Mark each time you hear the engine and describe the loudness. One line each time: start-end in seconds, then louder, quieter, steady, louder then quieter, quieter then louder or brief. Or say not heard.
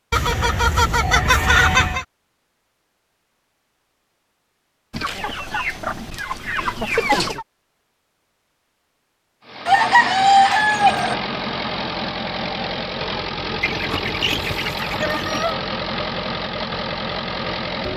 9.4-17.9 steady.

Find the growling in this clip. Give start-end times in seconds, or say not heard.
not heard.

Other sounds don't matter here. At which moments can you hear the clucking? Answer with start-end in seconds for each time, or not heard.
0.1-2.0, 4.9-7.5, 9.7-11.2, 13.6-15.6.